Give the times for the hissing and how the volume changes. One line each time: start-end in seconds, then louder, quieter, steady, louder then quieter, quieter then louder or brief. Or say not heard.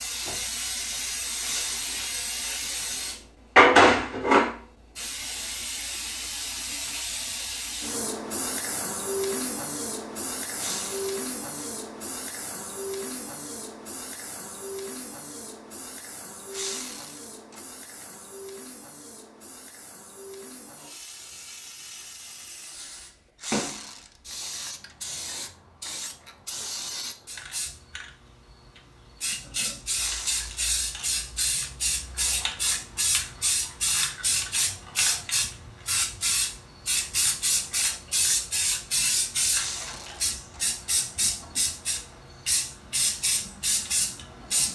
0.0-44.7 quieter then louder.